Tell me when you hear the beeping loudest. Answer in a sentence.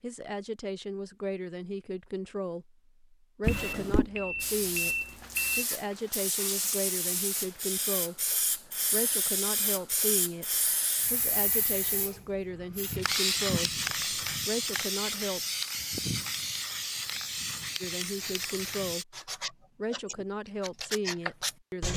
The volume of the beeping peaks at 5 seconds.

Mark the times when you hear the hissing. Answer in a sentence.
The hissing can be heard from 4.4 to 19.1 s.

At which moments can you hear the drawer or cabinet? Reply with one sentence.
The drawer or cabinet can be heard from 3.4 to 4.1 s.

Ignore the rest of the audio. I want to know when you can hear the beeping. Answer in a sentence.
You can hear the beeping from 3.5 to 5.7 s.